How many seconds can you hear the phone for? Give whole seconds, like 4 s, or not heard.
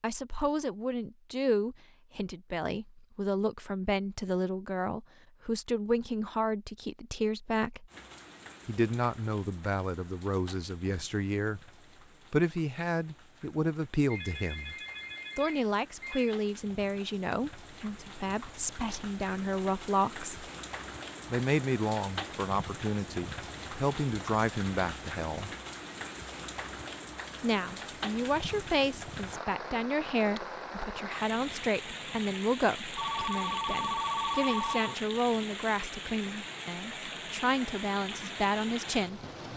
4 s.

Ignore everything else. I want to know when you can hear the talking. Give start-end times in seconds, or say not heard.
0.0-7.9, 8.7-11.6, 12.3-14.8, 15.3-20.4, 21.3-25.5, 27.4-39.5.